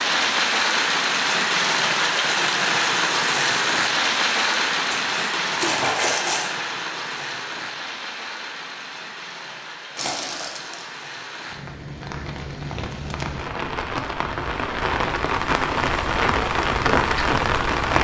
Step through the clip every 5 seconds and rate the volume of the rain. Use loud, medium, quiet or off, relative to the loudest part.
loud, medium, medium, loud.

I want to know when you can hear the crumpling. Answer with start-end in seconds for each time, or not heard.
4.9-6.5, 9.9-10.8.